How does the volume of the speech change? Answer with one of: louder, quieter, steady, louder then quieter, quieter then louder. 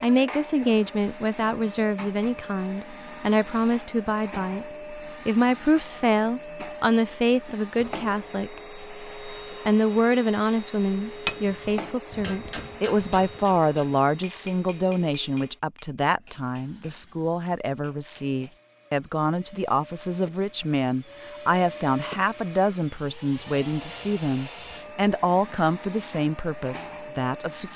steady.